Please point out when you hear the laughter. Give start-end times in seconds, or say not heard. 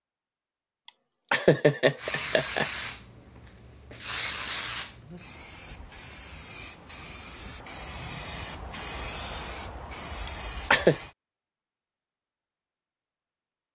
0.8-2.7, 10.2-10.9.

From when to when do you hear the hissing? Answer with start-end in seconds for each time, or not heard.
1.9-11.2.